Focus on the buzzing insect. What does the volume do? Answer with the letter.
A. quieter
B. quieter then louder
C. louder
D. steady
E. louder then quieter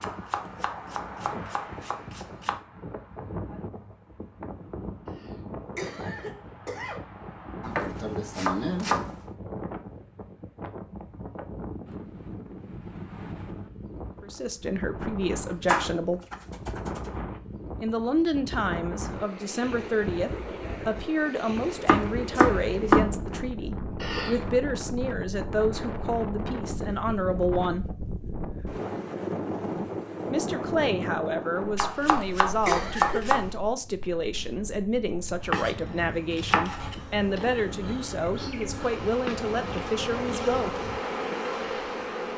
C.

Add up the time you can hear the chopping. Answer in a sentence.
You can hear the chopping for 11 seconds altogether.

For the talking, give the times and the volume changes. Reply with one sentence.
You can hear the talking briefly from 14.2 to 16.2 s; from 17.8 to 27.9 s, at a steady volume; and from 30.2 to 40.8 s, at a steady volume.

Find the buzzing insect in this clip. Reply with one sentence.
The buzzing insect can be heard from 36.1 to 42.3 s.